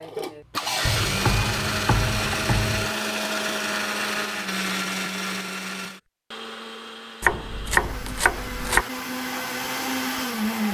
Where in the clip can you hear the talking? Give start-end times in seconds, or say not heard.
not heard.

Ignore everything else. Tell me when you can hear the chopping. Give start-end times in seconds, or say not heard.
0.8-2.9, 7.2-8.8.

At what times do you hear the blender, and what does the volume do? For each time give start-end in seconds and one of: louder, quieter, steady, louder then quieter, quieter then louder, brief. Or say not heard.
0.0-10.7 quieter then louder.